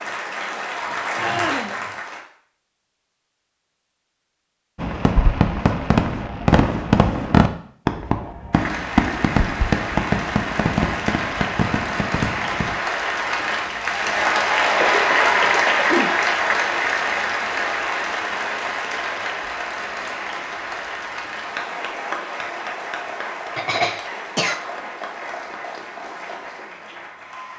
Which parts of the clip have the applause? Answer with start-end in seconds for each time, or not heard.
0.0-2.2, 8.5-27.5.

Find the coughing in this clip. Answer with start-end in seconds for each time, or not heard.
1.2-1.8, 14.8-16.1, 23.6-24.6.